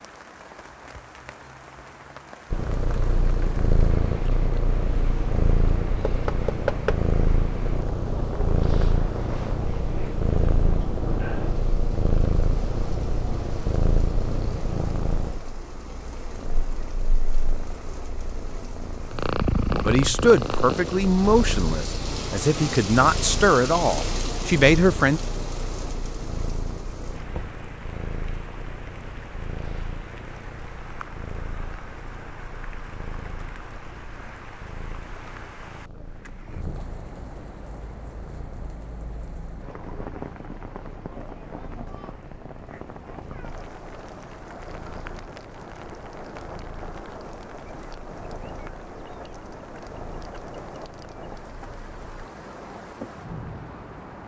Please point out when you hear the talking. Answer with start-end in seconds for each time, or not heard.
19.9-25.2.